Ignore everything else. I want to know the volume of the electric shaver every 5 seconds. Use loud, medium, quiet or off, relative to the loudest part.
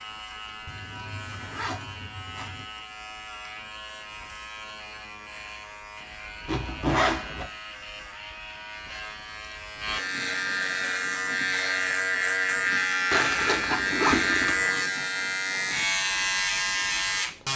quiet, quiet, loud, loud.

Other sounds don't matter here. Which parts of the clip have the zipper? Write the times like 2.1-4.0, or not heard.
0.7-2.6, 6.5-7.5, 13.1-14.8.